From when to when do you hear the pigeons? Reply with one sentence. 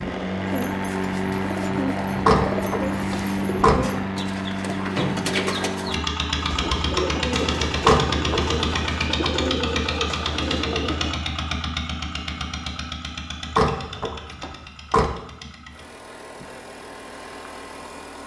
You can hear the pigeons from 0.5 to 11.2 s.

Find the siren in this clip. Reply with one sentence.
You can't hear the siren here.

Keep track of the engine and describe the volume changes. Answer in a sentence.
The loudness of the engine goes down.